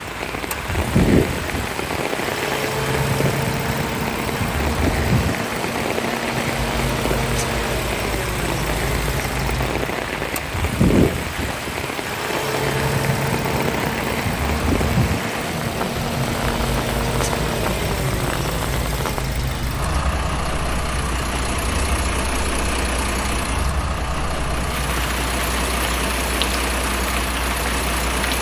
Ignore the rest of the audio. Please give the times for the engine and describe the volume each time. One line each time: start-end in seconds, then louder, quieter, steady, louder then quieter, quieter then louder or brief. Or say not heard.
0.0-28.3 steady.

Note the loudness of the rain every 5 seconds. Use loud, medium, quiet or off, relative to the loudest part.
loud, loud, loud, loud, medium, loud.